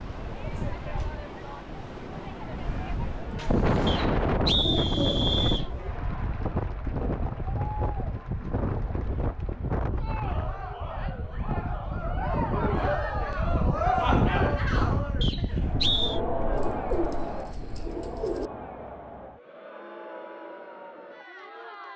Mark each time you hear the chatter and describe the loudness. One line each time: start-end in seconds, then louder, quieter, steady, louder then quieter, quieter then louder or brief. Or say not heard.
0.0-21.9 louder then quieter.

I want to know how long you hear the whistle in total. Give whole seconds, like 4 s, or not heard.
3 s.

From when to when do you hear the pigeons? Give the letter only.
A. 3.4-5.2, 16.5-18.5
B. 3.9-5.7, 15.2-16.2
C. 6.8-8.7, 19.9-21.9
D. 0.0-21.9
A.